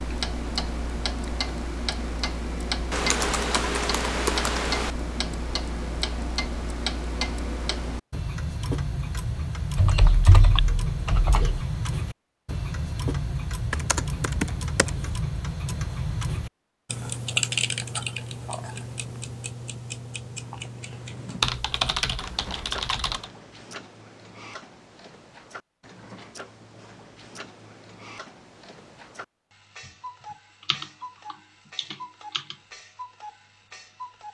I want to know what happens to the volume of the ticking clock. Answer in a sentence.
The volume of the ticking clock goes down.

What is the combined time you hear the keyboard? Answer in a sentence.
The keyboard can be heard for 9 seconds in total.